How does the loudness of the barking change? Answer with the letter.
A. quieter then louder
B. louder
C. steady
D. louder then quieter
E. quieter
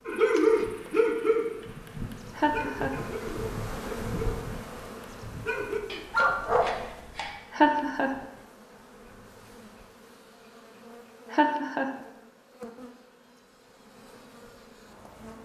A.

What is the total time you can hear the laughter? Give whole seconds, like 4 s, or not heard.
2 s.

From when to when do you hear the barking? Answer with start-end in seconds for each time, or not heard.
0.1-7.3.